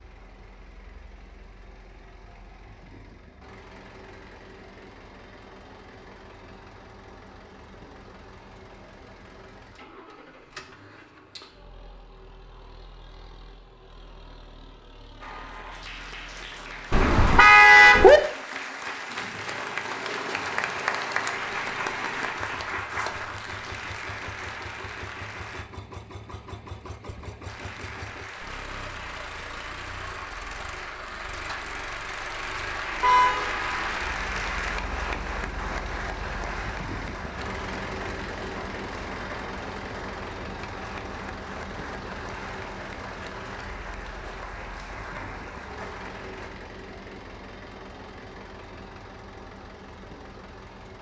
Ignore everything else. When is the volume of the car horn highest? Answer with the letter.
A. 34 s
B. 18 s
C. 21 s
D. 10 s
B.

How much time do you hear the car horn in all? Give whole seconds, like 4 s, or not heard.
2 s.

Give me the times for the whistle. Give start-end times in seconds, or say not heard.
not heard.